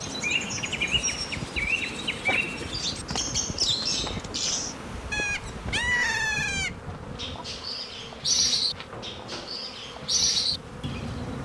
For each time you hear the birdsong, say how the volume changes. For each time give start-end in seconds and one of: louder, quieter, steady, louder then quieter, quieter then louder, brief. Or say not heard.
0.0-11.3 steady.